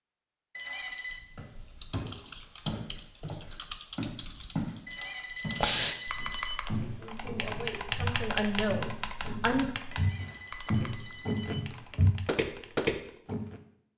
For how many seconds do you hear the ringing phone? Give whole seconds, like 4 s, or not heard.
4 s.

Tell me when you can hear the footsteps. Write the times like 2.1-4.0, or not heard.
1.4-4.8, 5.4-13.6.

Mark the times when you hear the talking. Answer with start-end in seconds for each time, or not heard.
7.0-9.7.